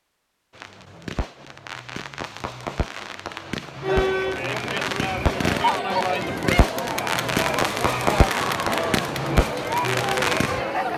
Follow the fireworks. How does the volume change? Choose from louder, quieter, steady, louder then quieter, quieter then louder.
louder.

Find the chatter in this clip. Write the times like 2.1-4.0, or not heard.
3.8-10.9.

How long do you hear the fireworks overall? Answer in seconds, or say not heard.
10 s.